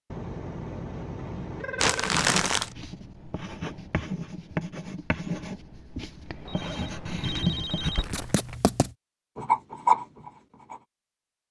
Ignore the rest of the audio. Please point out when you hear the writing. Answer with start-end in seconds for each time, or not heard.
2.0-10.8.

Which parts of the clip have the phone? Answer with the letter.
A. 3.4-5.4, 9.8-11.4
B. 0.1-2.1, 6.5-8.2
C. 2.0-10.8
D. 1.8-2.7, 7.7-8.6
B.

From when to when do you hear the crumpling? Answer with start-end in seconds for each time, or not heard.
1.8-2.7, 7.7-8.6.